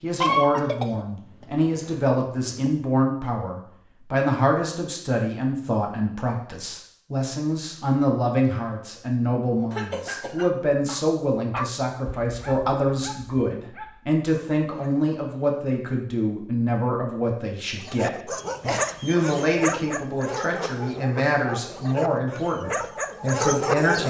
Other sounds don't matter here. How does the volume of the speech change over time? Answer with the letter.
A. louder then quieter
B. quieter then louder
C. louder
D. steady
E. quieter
D.